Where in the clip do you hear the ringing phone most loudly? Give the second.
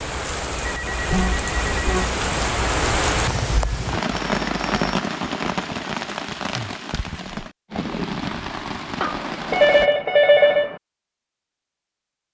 10 s.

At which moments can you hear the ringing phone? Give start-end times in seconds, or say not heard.
0.6-2.0, 4.1-4.8, 9.0-10.8.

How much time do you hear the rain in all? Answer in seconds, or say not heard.
10 s.